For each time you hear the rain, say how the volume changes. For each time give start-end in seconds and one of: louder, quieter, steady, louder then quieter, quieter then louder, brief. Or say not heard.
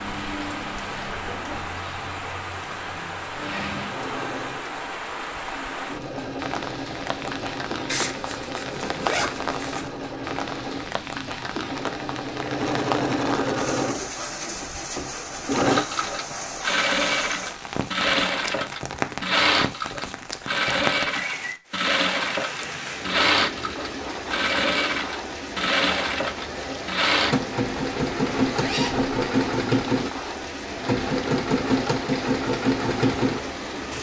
0.0-33.9 steady.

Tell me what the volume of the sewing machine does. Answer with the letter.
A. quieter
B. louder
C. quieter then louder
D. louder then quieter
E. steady
B.